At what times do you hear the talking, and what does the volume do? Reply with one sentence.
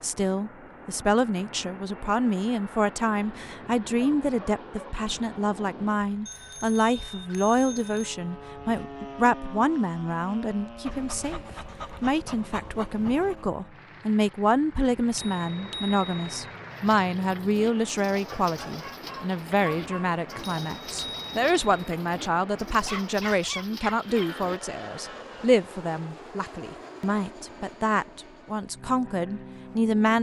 You can hear the talking from 0.0 to 11.4 s, at a steady volume; and from 12.0 to 30.1 s, at a steady volume.